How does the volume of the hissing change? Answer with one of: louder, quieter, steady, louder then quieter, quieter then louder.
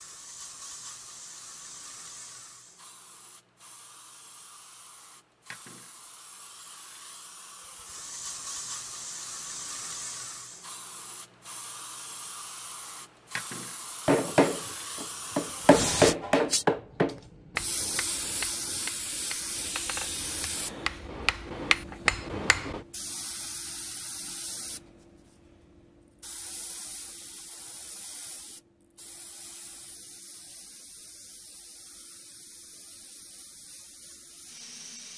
louder then quieter.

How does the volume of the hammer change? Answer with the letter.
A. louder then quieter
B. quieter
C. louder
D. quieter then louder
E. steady
D.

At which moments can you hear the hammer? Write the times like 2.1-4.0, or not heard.
14.1-22.8.